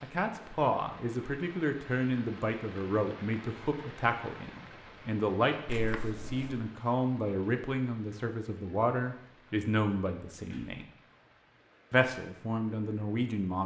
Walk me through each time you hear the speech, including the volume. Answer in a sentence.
You can hear the speech from 0.0 to 10.8 s, at a steady volume; and briefly from 11.9 to 13.6 s.